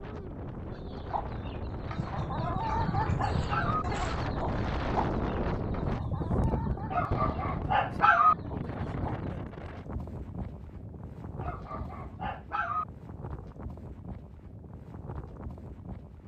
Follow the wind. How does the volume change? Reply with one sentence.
The volume of the wind goes up, then down.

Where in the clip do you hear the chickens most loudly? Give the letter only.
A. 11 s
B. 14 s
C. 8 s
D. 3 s
D.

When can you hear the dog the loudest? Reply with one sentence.
The loudest moment of the dog is at 8 seconds.